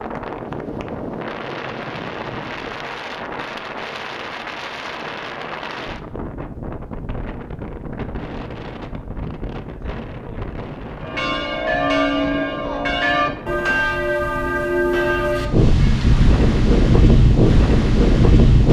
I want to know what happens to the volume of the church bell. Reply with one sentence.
The volume of the church bell stays about the same.